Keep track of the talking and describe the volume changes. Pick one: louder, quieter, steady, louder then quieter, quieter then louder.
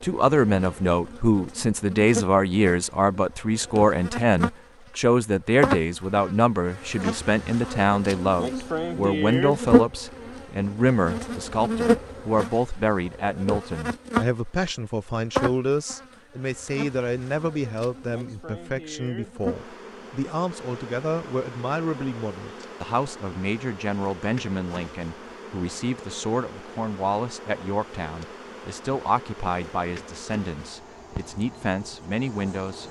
quieter.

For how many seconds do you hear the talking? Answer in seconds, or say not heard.
33 s.